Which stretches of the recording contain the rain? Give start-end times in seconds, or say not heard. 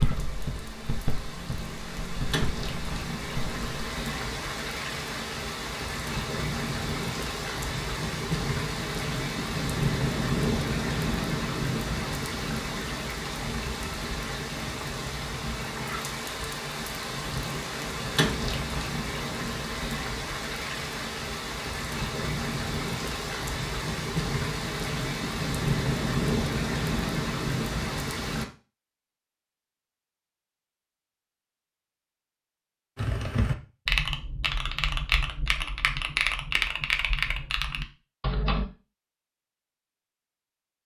0.0-28.4.